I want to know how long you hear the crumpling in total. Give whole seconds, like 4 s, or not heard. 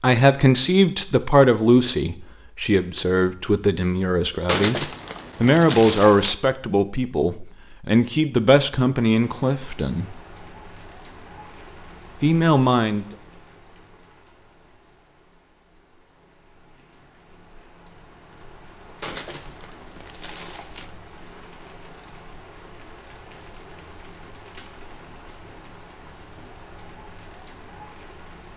4 s.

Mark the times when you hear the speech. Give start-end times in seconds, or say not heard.
0.0-10.1, 12.2-13.1.